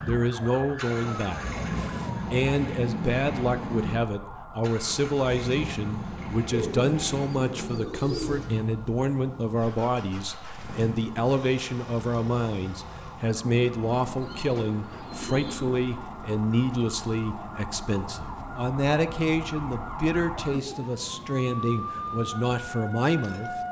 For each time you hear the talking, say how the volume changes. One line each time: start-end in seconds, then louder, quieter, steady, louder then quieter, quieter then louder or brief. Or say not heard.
0.1-23.6 steady.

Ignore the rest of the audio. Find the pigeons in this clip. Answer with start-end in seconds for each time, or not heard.
6.5-8.5, 14.2-15.8.